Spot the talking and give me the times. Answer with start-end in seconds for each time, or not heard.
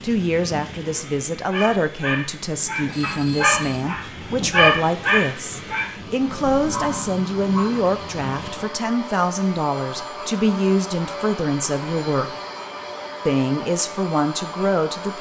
0.0-12.3, 13.2-15.1.